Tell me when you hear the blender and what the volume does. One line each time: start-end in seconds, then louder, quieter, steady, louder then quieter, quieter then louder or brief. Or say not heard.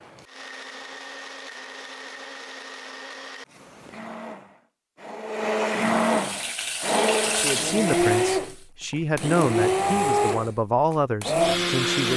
0.0-12.1 louder.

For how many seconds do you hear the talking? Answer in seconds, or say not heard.
5 s.